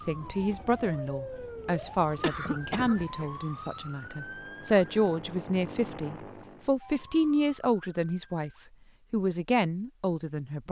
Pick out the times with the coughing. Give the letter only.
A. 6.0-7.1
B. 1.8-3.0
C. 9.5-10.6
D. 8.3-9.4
B.